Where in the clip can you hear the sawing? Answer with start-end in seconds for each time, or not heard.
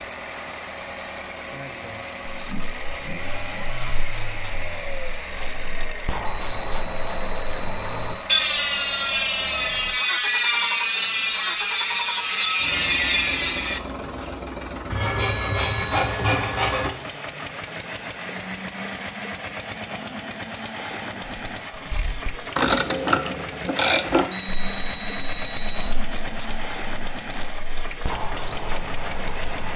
14.9-16.9.